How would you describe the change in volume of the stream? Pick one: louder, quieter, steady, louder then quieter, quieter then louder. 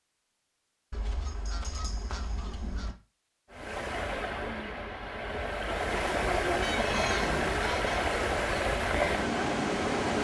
louder.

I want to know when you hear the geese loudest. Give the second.
7 s.